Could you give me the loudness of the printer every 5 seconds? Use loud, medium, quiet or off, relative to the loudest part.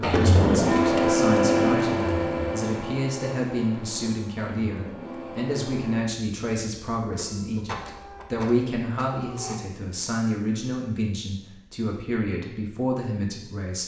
loud, quiet, off.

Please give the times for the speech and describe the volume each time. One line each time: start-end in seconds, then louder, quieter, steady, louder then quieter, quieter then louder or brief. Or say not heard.
0.0-13.8 steady.